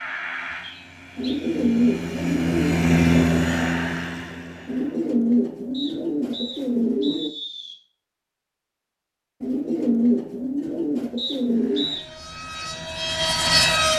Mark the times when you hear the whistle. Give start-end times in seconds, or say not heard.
0.6-1.4, 5.7-7.8, 11.2-12.0.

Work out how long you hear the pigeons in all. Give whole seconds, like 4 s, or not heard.
7 s.